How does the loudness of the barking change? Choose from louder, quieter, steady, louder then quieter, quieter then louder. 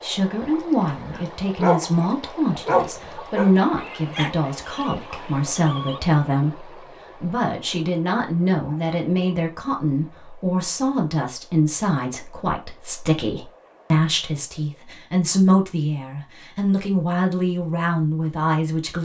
quieter.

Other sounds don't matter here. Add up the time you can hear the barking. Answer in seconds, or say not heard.
5 s.